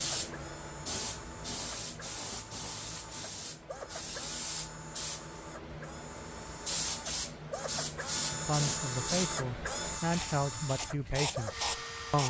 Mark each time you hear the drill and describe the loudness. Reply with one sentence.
You can hear the drill from 0.0 to 12.2 s, getting louder.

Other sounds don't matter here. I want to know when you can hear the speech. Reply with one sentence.
You can hear the speech from 8.3 to 12.2 s.